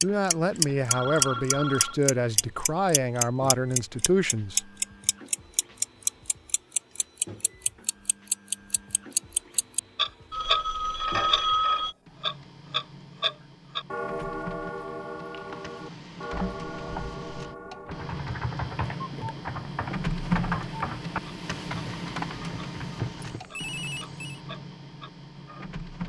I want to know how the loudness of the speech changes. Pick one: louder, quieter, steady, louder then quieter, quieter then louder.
steady.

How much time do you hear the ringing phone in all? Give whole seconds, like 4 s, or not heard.
4 s.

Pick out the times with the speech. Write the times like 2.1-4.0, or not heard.
0.0-4.7.